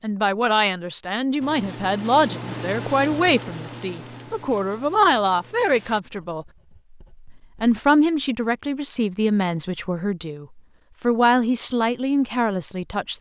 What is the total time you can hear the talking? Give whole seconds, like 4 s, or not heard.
12 s.